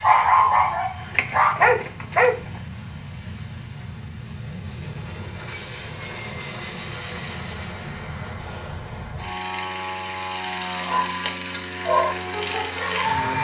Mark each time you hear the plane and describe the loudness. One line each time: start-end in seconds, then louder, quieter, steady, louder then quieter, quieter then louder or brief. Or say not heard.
0.0-13.3 louder.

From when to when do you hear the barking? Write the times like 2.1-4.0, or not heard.
0.0-2.4, 10.8-13.3.